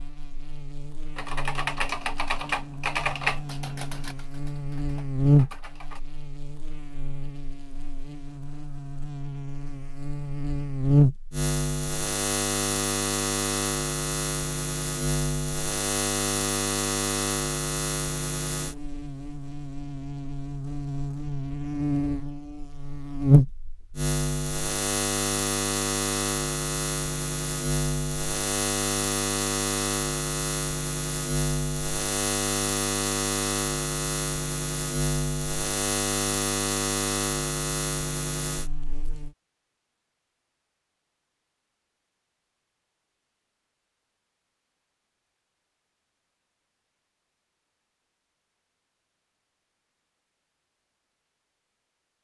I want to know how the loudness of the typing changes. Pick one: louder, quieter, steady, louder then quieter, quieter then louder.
quieter.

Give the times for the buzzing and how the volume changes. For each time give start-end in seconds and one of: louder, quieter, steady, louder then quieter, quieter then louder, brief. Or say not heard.
0.0-39.3 steady.